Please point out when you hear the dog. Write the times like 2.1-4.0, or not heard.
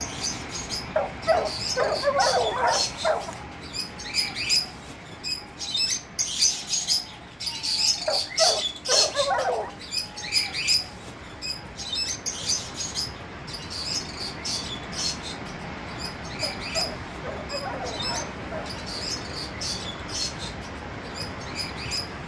0.9-3.4, 8.1-9.7, 16.4-18.8.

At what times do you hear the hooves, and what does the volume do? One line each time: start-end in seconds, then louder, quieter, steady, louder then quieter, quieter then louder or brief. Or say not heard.
not heard.